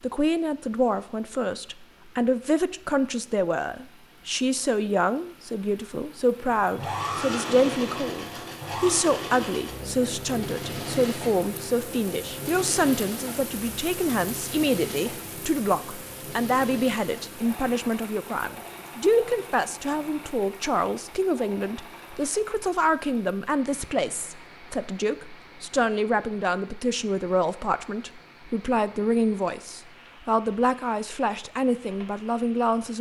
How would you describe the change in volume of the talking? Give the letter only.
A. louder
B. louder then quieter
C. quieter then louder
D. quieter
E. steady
E.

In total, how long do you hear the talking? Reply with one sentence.
The talking can be heard for 33 seconds in total.